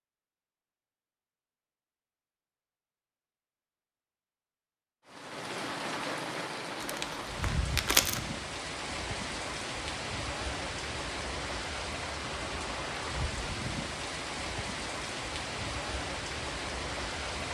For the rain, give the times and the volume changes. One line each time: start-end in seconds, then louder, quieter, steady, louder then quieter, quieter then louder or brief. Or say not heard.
5.0-17.4 steady.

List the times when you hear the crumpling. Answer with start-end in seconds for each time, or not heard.
6.8-8.2.